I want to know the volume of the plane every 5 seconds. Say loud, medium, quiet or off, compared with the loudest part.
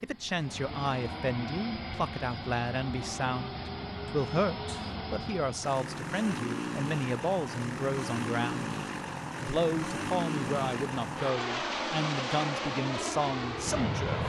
medium, loud, loud.